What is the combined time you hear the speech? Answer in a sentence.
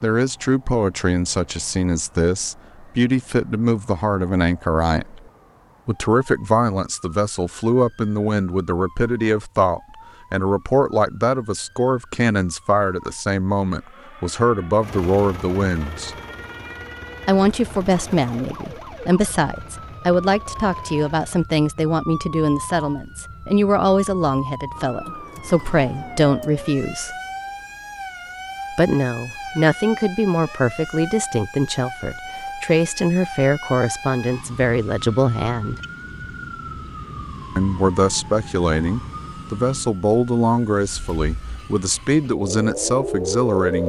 You can hear the speech for 39 seconds altogether.